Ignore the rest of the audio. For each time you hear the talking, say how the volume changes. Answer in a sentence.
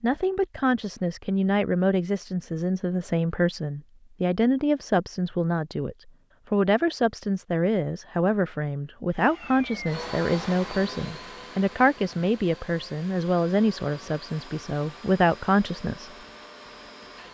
You can hear the talking from 0.0 to 16.1 s, at a steady volume.